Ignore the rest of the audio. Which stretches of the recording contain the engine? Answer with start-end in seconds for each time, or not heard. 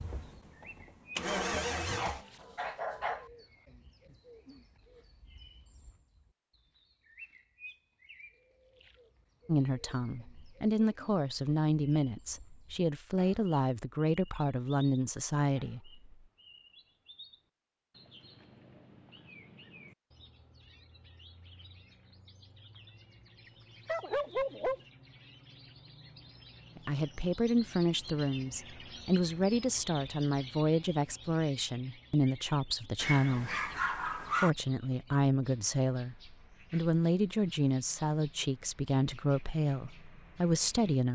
0.0-2.2.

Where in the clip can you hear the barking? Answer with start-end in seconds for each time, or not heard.
1.9-3.2, 23.4-24.8, 33.0-34.5.